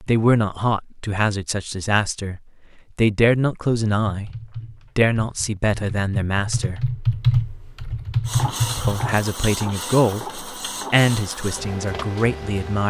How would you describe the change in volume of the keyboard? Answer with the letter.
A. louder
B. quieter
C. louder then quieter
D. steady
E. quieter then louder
A.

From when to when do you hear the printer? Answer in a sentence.
The printer can be heard from 8.2 to 12.8 s.